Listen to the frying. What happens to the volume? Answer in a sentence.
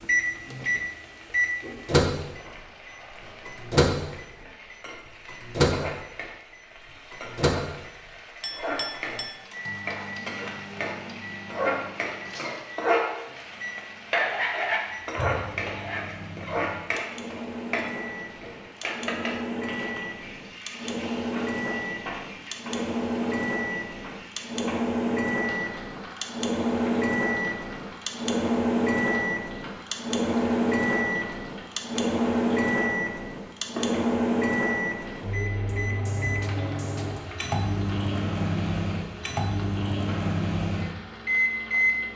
The volume of the frying goes up, then down.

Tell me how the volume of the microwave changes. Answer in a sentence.
The loudness of the microwave goes down, then up.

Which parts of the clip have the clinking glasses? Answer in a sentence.
You can hear the clinking glasses from 8.4 to 9.4 s.